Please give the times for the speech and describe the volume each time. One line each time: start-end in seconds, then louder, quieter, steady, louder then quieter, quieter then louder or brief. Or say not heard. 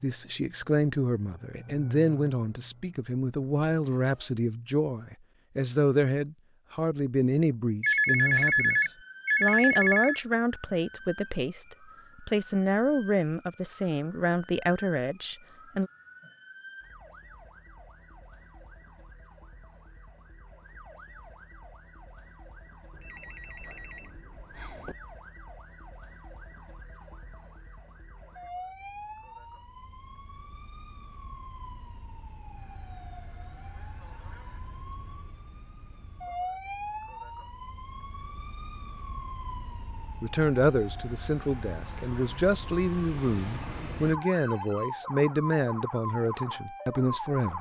0.0-15.9 steady
40.2-47.5 steady.